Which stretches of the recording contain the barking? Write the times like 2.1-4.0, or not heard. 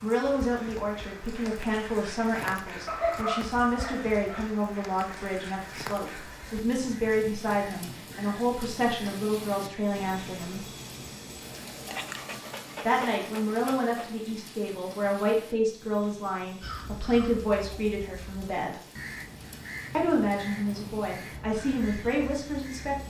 2.9-4.5, 11.8-14.1.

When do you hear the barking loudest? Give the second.
3 s.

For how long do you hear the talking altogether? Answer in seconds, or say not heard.
20 s.